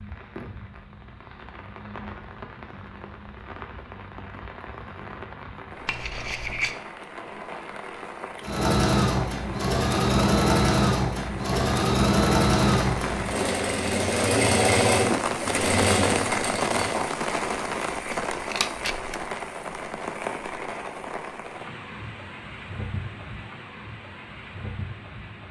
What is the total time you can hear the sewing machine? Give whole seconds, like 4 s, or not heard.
9 s.